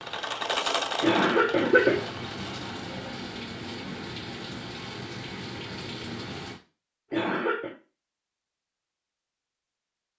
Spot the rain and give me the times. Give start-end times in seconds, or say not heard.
0.0-6.6.